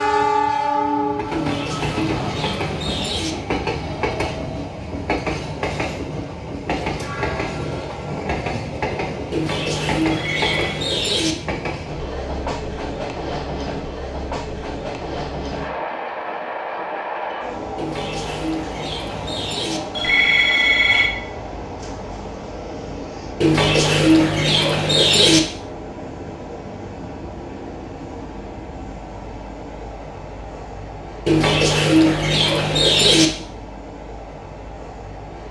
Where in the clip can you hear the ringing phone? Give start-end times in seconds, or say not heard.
10.1-10.8, 19.9-21.1.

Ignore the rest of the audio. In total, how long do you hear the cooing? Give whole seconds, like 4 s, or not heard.
10 s.